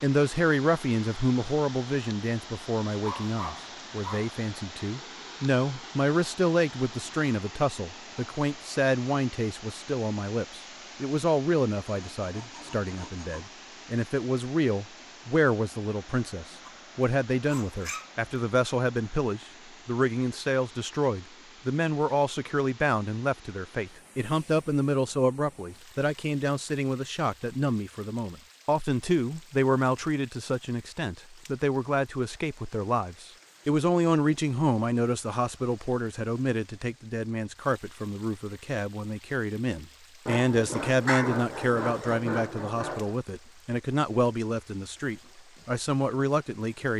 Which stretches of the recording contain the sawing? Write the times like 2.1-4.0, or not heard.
11.9-13.6, 40.2-43.1.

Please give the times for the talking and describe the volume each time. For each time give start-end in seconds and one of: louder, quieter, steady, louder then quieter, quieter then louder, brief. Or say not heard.
0.0-46.9 steady.